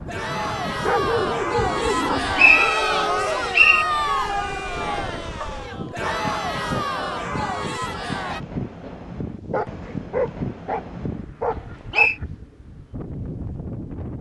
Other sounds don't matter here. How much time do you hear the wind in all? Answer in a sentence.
You can hear the wind for 14 seconds altogether.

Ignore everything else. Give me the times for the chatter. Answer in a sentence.
You can hear the chatter from 0.1 to 8.4 s.